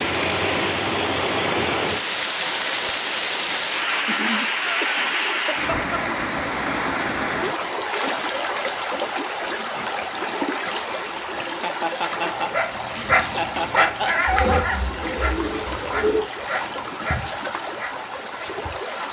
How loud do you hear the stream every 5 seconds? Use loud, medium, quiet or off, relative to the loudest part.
loud, loud, medium, medium.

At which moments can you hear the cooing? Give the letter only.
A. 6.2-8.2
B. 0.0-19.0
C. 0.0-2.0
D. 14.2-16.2
D.